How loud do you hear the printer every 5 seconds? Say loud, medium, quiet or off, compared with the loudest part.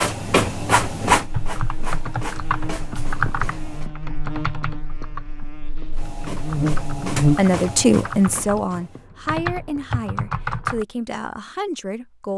loud, medium, off.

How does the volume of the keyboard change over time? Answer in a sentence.
The volume of the keyboard goes down, then up.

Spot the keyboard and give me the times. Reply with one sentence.
You can hear the keyboard from 1.3 to 10.8 s.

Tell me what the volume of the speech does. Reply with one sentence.
The volume of the speech goes down.